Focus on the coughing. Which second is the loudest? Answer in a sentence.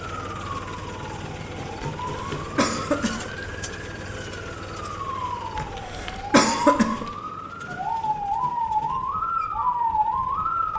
The loudest moment of the coughing is at 7 seconds.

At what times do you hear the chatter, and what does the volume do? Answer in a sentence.
You can't hear the chatter here.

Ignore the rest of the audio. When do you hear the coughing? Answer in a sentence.
The coughing can be heard from 1.8 to 3.5 s and from 5.5 to 7.1 s.